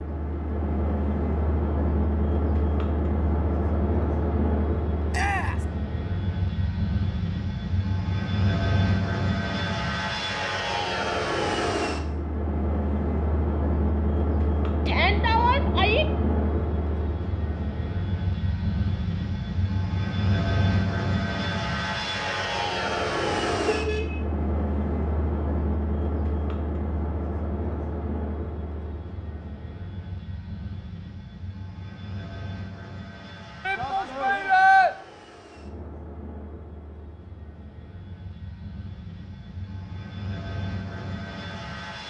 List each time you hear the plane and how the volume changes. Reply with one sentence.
The plane can be heard from 0.0 to 42.0 s, getting quieter.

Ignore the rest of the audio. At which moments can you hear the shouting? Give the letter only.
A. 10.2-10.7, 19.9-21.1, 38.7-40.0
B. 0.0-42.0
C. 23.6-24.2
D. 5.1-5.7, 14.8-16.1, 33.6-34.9
D.